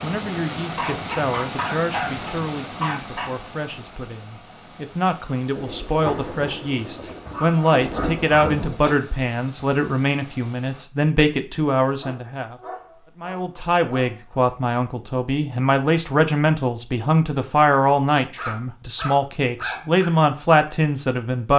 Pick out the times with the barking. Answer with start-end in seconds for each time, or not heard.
0.6-3.3, 7.2-8.9, 11.9-14.2, 18.4-20.1.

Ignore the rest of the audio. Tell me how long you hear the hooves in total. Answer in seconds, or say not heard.
not heard.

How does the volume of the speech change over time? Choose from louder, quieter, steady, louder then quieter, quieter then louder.
louder.